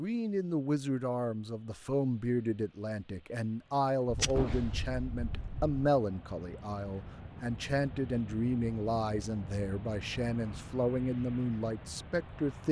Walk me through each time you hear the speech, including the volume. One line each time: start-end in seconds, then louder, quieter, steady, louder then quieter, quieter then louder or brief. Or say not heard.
0.0-12.6 steady.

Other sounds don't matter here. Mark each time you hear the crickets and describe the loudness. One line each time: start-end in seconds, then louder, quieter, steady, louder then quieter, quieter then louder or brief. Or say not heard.
not heard.